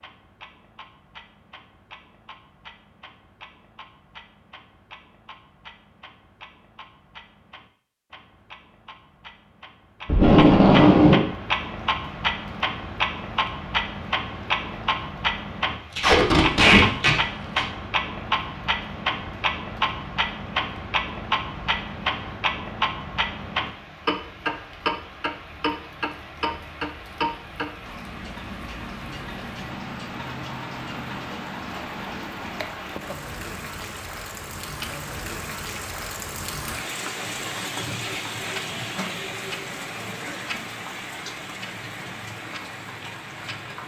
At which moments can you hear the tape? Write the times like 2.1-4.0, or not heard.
10.1-11.2, 15.9-17.6, 38.4-39.0.